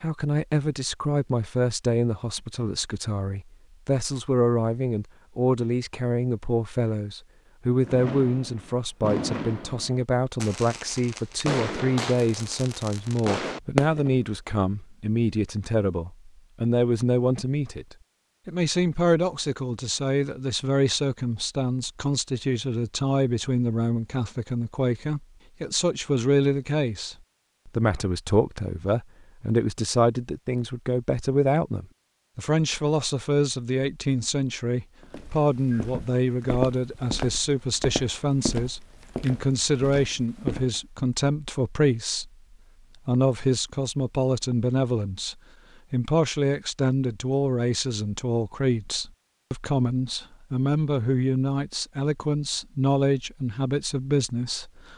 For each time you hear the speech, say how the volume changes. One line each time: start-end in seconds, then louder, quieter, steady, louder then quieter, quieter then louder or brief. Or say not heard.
0.0-42.3 steady
43.0-54.9 steady.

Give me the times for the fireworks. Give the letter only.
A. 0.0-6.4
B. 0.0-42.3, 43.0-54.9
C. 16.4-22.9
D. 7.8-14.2
D.